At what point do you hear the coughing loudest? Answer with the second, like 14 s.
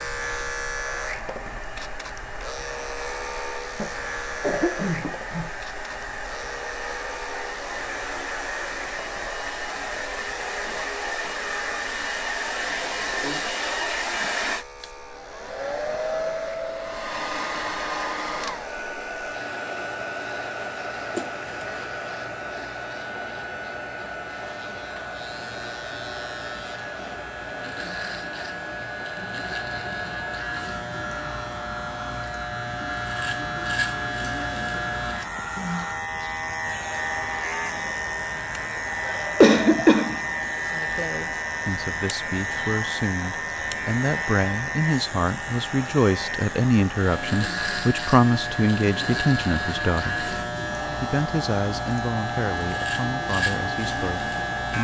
40 s.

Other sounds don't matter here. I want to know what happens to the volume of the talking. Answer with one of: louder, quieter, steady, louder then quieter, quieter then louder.
louder then quieter.